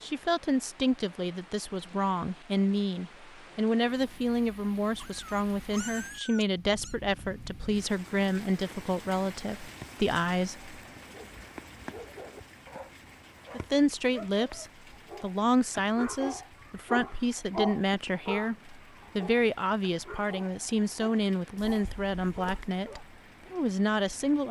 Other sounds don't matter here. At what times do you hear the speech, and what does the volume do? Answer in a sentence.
The speech can be heard from 0.0 to 10.8 s, at a steady volume; and from 13.5 to 24.4 s, at a steady volume.